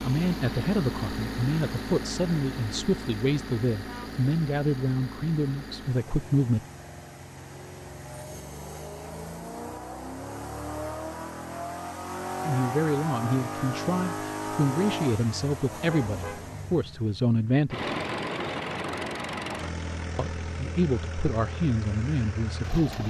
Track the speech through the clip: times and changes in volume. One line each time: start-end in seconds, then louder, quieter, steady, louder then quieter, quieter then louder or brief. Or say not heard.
0.0-6.7 steady
12.4-17.9 steady
20.1-23.0 brief.